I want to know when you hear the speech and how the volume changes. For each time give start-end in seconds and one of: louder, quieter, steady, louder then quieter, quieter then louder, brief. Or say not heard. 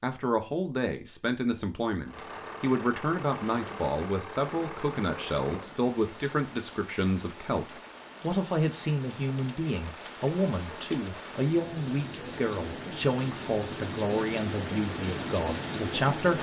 0.0-16.3 steady.